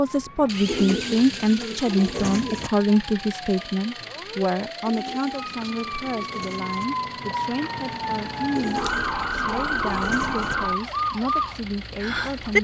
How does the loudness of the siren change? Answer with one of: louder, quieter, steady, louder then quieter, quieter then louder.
louder.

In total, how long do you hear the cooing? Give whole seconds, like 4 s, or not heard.
6 s.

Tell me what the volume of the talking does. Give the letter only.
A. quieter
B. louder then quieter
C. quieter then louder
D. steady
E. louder
A.